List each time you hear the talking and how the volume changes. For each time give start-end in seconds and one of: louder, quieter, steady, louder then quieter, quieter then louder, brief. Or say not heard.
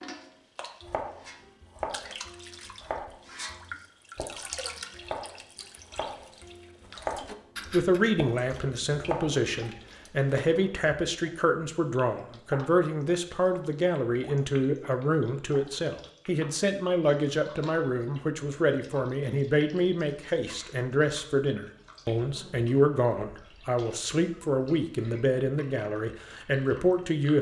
7.7-27.3 steady.